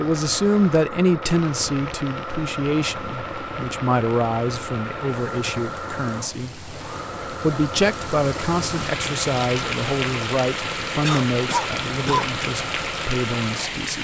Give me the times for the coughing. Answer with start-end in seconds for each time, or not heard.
11.0-12.3.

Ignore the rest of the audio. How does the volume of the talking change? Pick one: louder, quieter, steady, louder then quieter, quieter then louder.
quieter.